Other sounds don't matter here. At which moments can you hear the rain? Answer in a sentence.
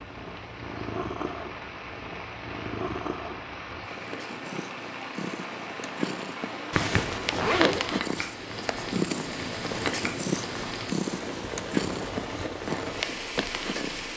The rain can be heard from 0.0 to 14.1 s.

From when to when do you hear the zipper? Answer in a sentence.
The zipper can be heard from 6.7 to 7.8 s.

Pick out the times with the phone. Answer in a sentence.
The phone can't be heard in this clip.